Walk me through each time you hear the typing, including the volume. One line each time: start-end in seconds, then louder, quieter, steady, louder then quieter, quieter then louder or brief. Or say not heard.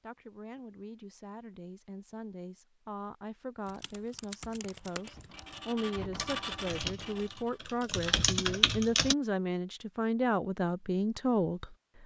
3.6-9.2 quieter then louder.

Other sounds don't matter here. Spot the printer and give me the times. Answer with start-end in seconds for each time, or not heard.
4.8-7.7.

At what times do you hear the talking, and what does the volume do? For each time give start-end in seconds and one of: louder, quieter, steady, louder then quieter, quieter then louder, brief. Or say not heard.
0.0-11.8 louder.